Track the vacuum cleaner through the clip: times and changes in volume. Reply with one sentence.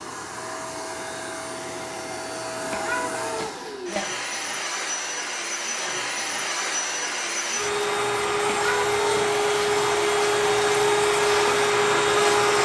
You can hear the vacuum cleaner from 0.0 to 12.5 s, getting louder.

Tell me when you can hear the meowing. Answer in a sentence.
The meowing can be heard from 2.7 to 3.8 s and from 8.4 to 9.4 s.